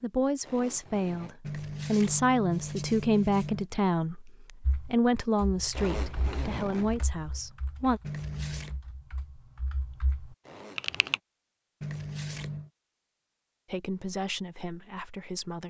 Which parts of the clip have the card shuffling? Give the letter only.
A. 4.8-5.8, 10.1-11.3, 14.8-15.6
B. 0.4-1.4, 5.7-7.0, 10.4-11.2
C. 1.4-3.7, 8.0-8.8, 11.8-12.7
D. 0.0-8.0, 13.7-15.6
C.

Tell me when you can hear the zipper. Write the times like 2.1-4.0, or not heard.
0.4-1.4, 5.7-7.0, 10.4-11.2.